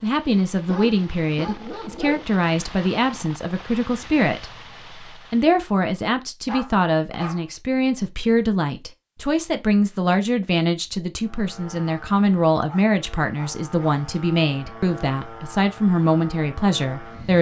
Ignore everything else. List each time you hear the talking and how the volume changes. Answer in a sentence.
The talking can be heard from 0.0 to 17.3 s, at a steady volume.